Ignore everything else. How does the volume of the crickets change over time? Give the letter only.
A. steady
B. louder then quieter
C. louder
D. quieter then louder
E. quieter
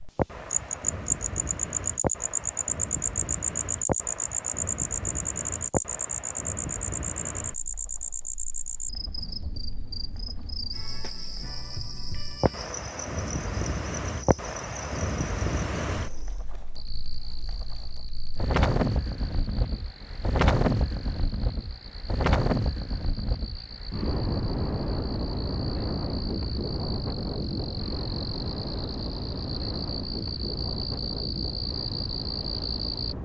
D.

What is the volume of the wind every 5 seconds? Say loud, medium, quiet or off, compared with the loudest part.
medium, medium, medium, loud, loud, loud, medium.